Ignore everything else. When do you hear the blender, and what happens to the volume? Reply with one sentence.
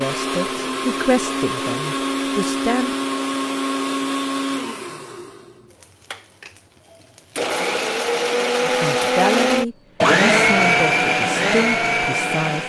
The blender can be heard from 0.0 to 12.6 s, getting quieter then louder.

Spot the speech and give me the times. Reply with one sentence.
You can hear the speech from 0.0 to 2.9 s and from 8.6 to 12.6 s.